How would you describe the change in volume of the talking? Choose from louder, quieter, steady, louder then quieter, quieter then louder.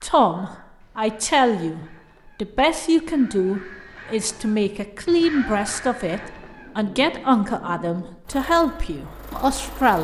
steady.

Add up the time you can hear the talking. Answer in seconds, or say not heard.
10 s.